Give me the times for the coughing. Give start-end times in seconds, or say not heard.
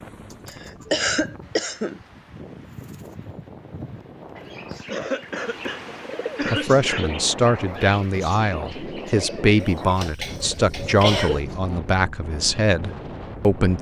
0.5-2.0, 4.8-7.1, 9.6-11.4.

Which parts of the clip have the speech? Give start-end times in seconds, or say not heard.
6.5-13.7.